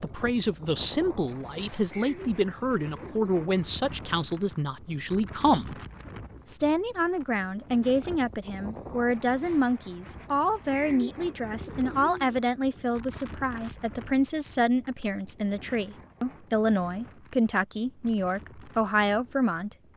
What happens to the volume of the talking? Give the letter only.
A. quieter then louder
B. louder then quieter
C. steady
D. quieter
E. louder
C.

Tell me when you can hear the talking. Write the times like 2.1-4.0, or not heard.
0.0-5.8, 6.5-19.8.